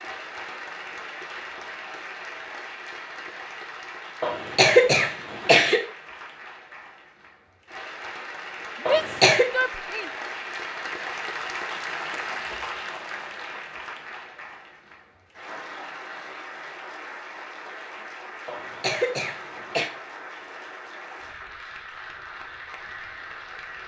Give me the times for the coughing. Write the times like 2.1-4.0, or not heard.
4.2-5.8, 8.8-9.5, 18.4-19.9.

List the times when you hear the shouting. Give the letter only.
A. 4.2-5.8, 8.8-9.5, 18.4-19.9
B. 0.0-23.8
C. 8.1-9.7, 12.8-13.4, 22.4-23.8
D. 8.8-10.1
D.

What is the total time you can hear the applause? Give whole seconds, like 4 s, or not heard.
24 s.